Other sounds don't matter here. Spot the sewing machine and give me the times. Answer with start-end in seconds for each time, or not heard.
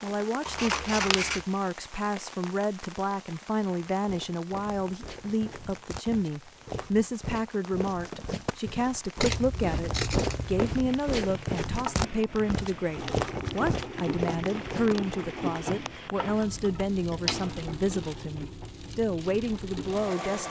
11.7-20.4.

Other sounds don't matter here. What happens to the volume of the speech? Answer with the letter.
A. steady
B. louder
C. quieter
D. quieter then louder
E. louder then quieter
A.